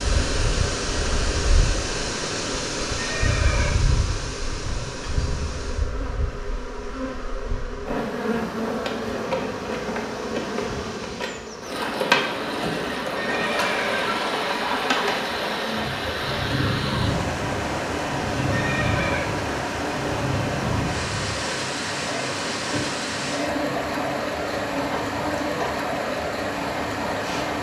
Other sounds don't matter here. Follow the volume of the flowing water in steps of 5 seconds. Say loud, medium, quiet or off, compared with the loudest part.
loud, quiet, loud, loud, loud, loud.